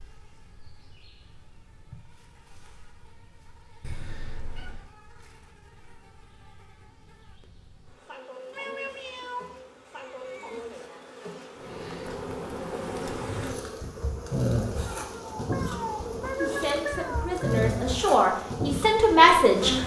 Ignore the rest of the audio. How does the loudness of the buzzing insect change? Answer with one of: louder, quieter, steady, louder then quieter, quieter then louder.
louder.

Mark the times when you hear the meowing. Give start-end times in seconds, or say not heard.
3.8-4.9, 8.5-10.7, 15.1-17.6.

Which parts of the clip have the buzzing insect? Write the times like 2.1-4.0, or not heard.
0.0-19.8.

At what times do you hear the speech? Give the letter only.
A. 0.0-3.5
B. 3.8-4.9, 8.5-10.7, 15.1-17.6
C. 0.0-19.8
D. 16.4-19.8
D.